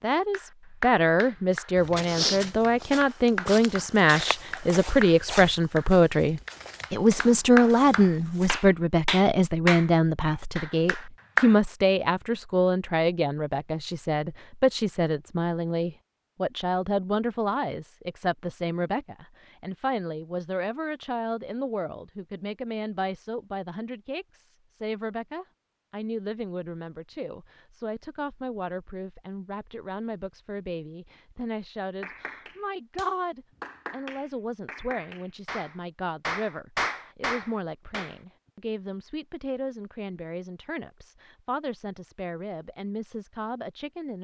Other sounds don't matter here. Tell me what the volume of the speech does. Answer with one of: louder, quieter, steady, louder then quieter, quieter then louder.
quieter.